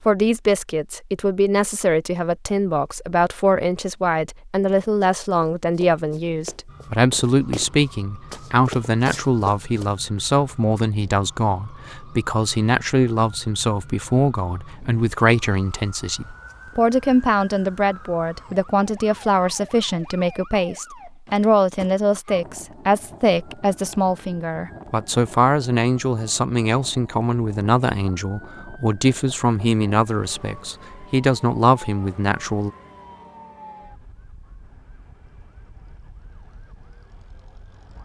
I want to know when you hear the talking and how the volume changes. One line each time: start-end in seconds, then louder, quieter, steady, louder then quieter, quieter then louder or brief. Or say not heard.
0.1-32.7 steady.